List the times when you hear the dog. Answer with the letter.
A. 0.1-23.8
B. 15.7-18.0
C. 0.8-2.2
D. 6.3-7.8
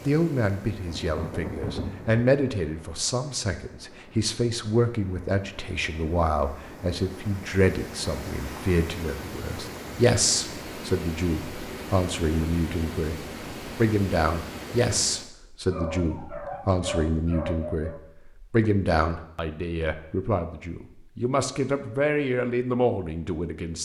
B.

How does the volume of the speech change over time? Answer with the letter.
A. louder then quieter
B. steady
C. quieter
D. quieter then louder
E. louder
B.